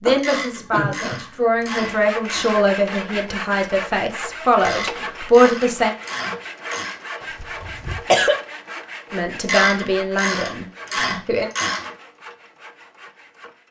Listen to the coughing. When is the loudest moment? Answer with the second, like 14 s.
8 s.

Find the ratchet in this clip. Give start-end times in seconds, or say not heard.
0.1-2.6, 4.6-7.0, 9.4-11.9.